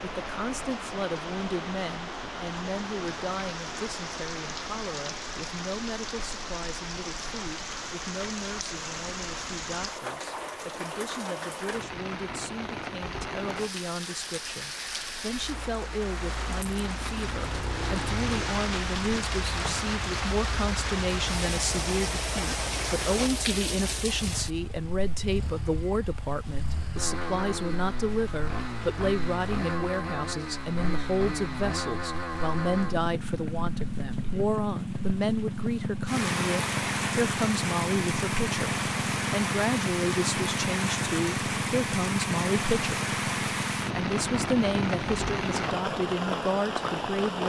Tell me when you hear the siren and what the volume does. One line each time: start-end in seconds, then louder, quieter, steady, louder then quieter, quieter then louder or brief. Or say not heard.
not heard.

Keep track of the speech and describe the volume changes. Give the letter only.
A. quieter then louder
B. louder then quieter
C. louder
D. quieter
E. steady
C.